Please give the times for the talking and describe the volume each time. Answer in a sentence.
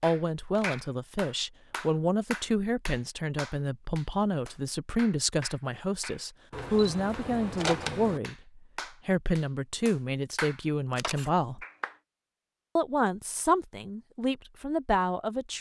You can hear the talking from 0.0 to 11.7 s, at a steady volume; and briefly from 12.8 to 15.5 s.